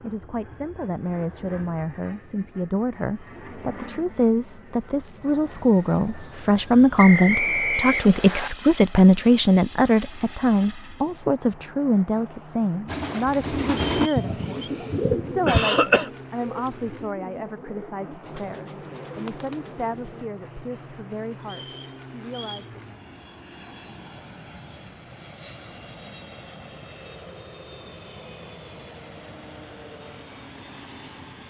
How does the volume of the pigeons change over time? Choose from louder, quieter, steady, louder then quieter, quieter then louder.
quieter.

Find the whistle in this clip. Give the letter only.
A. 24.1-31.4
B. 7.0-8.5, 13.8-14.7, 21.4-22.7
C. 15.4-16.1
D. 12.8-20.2
B.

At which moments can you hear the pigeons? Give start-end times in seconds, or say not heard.
12.8-20.2.